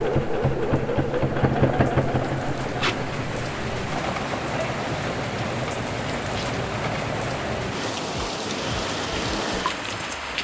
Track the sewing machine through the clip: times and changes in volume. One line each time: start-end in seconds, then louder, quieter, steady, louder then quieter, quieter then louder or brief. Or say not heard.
0.0-10.2 quieter.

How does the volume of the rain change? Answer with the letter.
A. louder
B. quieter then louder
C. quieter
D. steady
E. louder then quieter
A.